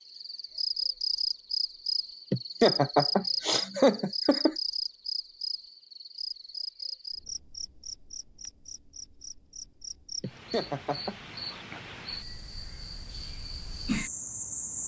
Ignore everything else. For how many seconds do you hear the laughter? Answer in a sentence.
The laughter can be heard for 3 seconds in total.